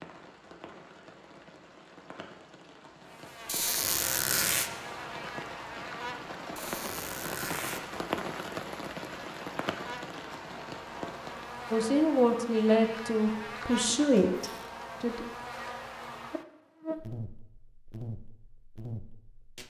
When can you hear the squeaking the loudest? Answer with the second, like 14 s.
4 s.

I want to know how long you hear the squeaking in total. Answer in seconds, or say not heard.
3 s.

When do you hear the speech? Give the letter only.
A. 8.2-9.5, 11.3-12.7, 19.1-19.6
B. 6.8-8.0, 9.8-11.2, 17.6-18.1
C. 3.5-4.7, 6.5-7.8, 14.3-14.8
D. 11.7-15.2
D.